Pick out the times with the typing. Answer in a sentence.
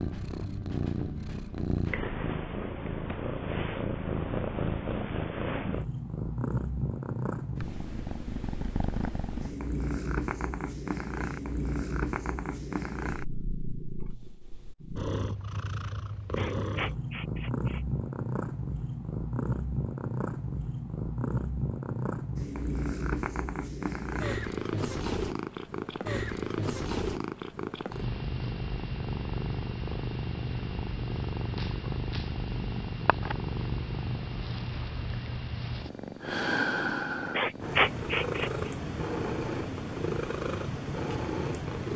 You can't hear the typing here.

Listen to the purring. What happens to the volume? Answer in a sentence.
The loudness of the purring stays about the same.